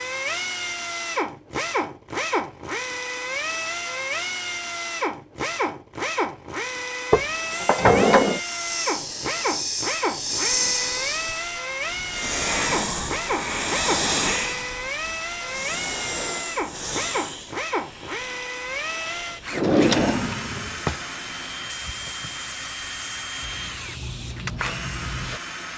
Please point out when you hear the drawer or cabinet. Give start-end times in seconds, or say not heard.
7.1-8.4, 19.5-20.9.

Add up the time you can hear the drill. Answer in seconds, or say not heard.
26 s.